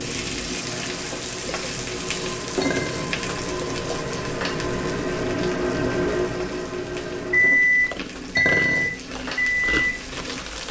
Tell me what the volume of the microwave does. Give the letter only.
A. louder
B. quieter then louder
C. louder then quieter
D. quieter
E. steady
A.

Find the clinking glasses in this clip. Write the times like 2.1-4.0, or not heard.
2.6-3.2, 8.3-8.9.